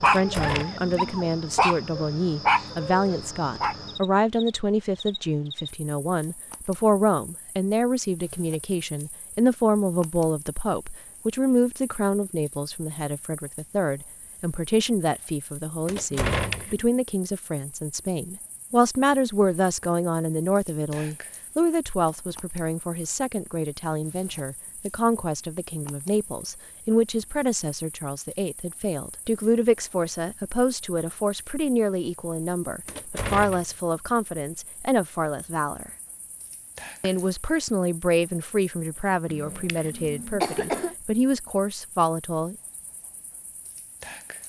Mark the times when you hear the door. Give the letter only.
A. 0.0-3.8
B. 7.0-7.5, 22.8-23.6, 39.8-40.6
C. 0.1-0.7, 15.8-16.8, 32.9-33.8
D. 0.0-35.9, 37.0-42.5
C.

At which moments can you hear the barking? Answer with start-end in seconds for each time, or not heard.
0.0-3.8.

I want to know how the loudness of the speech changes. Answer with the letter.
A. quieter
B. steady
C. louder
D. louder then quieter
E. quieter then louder
B.